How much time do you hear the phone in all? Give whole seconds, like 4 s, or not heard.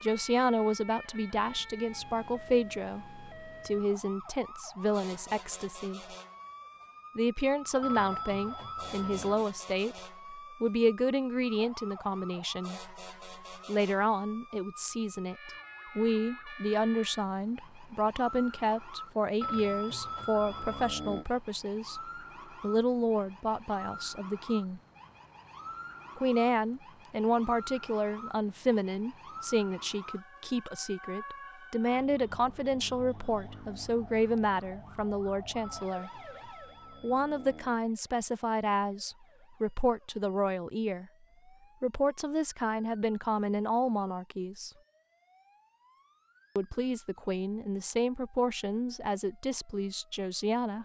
6 s.